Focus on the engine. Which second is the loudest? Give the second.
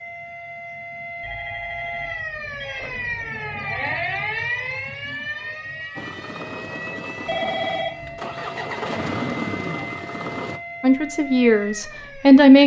9 s.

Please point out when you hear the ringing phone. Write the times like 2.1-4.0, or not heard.
1.2-3.1, 7.2-8.2.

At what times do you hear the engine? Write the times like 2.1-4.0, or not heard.
6.0-10.6.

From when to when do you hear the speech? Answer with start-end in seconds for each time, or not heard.
10.8-12.6.